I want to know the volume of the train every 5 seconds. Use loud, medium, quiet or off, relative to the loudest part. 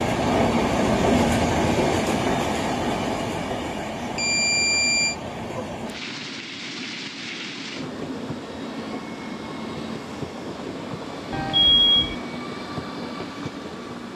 loud, medium, medium.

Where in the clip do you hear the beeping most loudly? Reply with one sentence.
The volume of the beeping peaks at 12 seconds.